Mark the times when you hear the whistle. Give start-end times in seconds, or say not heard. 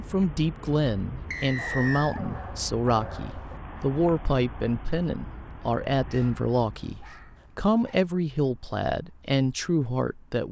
1.3-2.2.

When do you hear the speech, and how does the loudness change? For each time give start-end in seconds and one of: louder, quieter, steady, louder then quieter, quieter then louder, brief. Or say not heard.
0.0-10.4 steady.